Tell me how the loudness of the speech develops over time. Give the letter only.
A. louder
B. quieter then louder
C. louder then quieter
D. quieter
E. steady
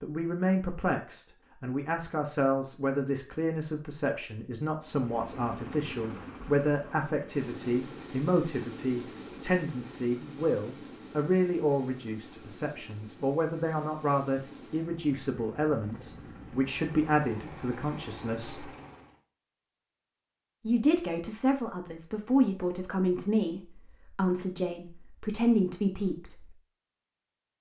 E.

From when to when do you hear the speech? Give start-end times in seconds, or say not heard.
0.0-18.6, 20.6-26.6.